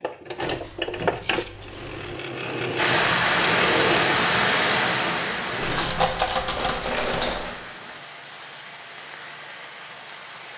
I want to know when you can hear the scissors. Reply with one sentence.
The scissors can be heard from 0.4 to 2.1 s and from 5.6 to 6.2 s.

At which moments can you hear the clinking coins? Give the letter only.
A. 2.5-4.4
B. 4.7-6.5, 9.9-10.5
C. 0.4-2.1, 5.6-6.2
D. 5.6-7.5
D.